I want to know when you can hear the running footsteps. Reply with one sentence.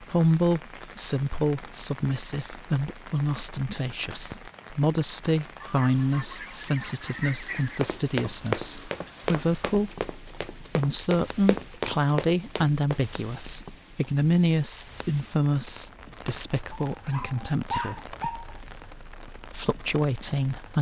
The running footsteps can be heard from 7.7 to 13.1 s.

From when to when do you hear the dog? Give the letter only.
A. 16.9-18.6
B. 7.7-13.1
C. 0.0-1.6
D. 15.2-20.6
A.